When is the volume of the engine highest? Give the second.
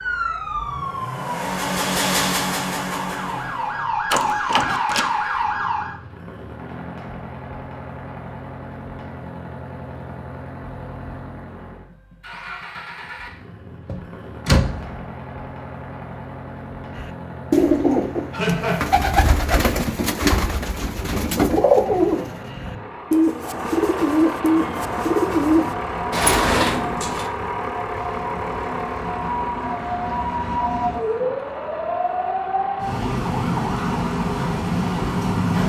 2 s.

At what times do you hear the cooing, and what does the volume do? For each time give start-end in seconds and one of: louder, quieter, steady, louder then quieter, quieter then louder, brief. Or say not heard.
16.9-25.8 steady.